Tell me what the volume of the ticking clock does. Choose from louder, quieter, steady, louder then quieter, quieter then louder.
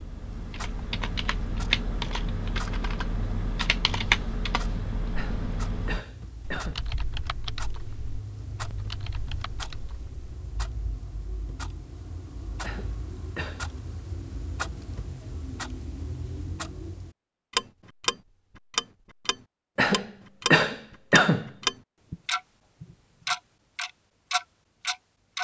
louder.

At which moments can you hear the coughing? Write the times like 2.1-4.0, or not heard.
5.2-6.8, 12.6-13.7, 19.8-21.5.